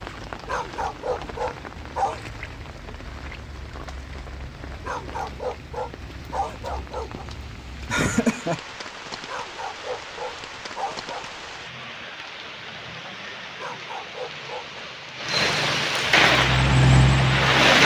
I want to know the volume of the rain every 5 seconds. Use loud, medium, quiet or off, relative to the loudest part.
quiet, quiet, quiet, loud.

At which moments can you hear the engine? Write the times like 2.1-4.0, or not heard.
16.2-17.8.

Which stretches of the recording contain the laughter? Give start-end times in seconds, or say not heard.
7.9-8.6.